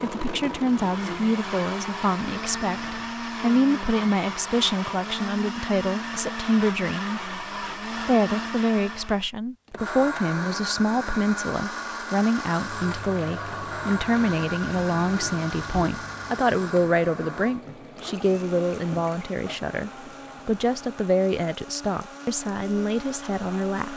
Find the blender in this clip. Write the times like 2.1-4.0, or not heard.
0.0-23.9.